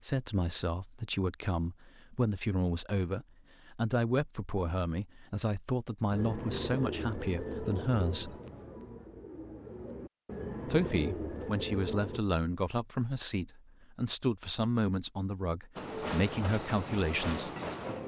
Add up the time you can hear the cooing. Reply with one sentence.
You can hear the cooing for 6 seconds altogether.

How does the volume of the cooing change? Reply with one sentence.
The loudness of the cooing goes down, then up.